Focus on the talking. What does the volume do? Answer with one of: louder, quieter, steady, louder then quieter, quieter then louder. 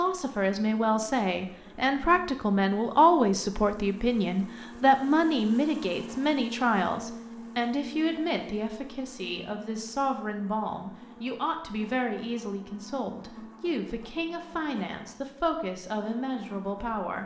quieter.